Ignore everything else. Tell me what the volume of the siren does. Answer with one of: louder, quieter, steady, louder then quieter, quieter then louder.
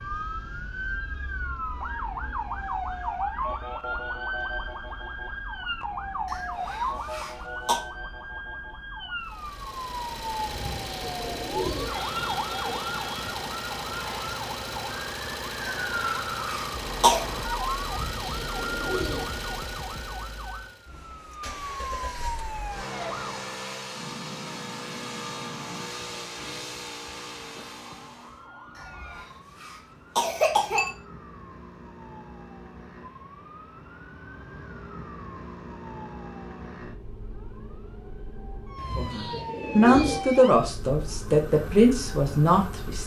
quieter then louder.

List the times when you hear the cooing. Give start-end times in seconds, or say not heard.
10.4-12.8, 17.8-19.4, 38.8-40.4.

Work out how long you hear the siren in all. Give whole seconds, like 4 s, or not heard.
43 s.